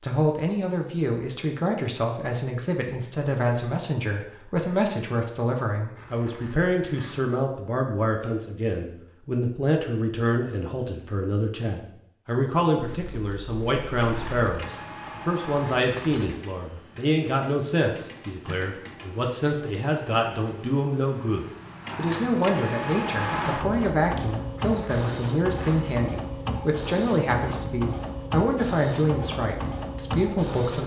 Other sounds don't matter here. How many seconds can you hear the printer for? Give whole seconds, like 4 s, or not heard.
17 s.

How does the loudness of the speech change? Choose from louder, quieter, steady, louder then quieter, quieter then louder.
steady.